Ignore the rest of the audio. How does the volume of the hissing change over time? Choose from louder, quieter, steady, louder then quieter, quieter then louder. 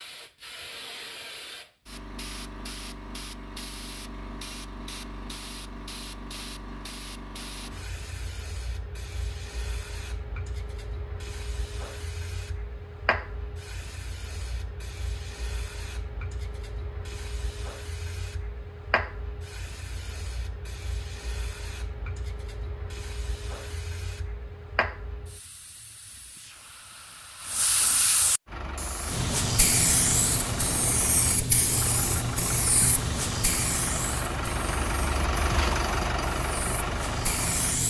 louder.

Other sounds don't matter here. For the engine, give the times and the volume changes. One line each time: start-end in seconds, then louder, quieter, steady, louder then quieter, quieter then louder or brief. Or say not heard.
28.4-37.8 louder.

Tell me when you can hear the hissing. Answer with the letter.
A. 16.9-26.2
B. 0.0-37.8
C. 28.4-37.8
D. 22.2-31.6
B.